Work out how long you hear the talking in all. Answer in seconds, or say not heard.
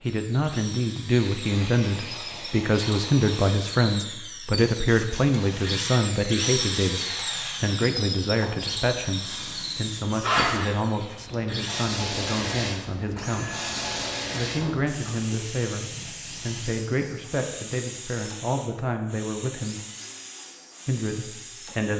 20 s.